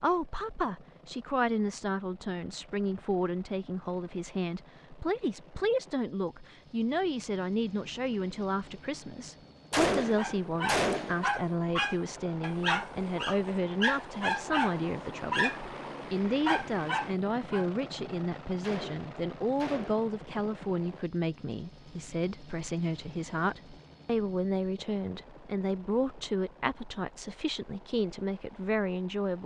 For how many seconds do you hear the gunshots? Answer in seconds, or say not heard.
3 s.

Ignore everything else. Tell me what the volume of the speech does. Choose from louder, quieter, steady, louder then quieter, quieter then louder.
steady.